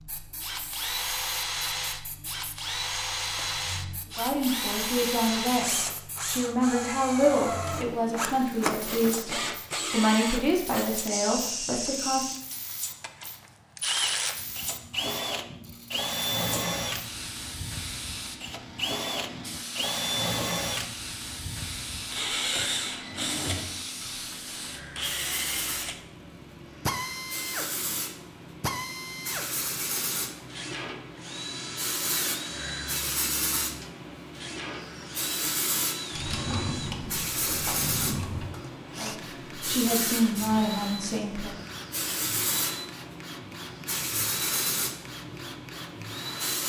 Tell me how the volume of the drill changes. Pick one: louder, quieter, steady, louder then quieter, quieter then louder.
quieter.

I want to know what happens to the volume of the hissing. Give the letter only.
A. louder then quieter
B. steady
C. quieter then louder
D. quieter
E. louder
E.